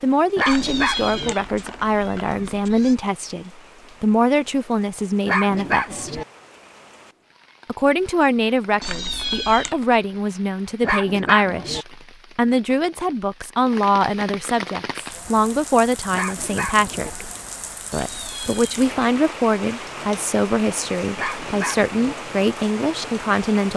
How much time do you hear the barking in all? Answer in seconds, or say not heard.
5 s.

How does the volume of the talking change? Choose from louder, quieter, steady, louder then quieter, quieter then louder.
steady.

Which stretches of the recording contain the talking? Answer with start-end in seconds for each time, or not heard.
0.0-6.2, 7.7-17.2, 17.9-23.7.